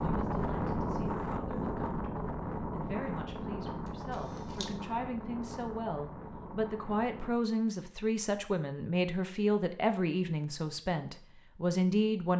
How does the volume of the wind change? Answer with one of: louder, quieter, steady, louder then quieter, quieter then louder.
quieter.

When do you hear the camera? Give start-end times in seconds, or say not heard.
3.9-4.7.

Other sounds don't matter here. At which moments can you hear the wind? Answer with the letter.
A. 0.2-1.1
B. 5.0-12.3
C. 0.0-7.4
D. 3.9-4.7
C.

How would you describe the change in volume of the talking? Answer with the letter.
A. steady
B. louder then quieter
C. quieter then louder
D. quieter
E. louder
E.